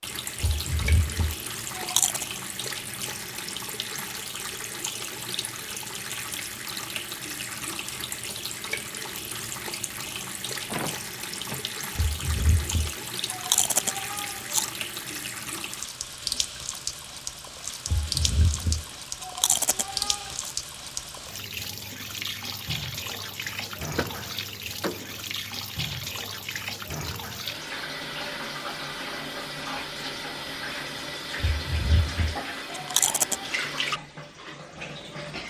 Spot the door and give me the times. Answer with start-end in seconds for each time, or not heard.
10.7-11.7, 23.8-25.2.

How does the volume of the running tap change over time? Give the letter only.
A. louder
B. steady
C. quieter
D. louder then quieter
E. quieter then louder
B.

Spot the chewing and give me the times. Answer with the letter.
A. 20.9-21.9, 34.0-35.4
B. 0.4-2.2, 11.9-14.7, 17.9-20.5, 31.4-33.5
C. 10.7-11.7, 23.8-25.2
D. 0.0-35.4
B.